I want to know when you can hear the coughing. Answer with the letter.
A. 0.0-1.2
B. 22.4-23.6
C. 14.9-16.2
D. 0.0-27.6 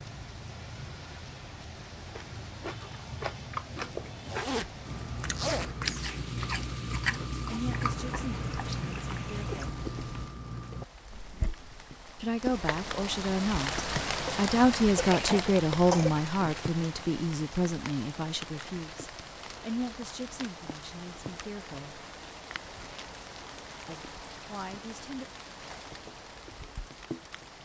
C.